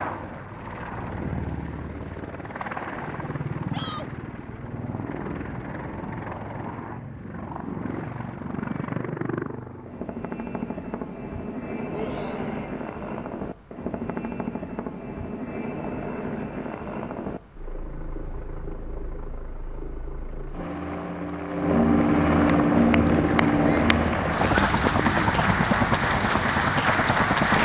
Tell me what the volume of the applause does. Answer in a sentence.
The volume of the applause goes up.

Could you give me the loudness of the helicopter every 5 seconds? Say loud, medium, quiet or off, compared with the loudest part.
medium, medium, medium, quiet, loud, loud.